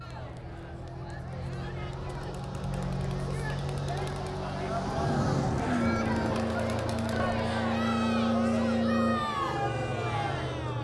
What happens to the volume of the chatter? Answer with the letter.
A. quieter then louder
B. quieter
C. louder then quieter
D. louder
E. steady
D.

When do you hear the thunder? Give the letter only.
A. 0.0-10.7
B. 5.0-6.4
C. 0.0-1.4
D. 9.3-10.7
B.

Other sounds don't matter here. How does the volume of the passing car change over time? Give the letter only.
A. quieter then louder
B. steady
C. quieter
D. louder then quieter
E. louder
E.